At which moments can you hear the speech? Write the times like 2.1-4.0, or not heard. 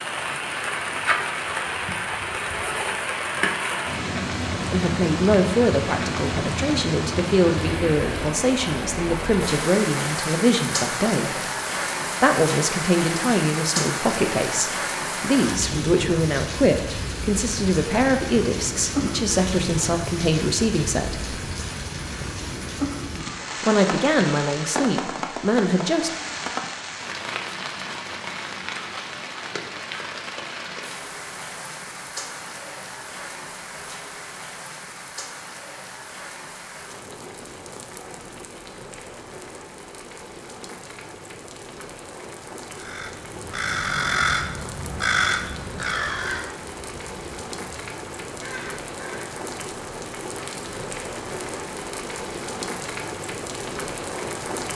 4.7-11.4, 12.2-21.4, 23.6-26.1.